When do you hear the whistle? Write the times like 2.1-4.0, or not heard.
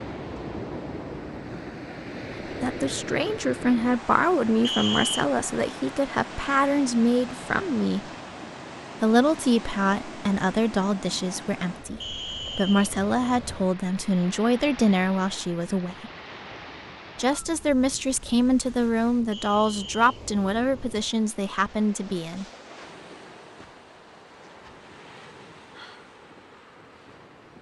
4.6-5.2, 12.0-12.9, 19.3-20.2.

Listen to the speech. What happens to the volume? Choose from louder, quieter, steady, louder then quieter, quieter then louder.
steady.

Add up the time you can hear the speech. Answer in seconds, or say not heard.
18 s.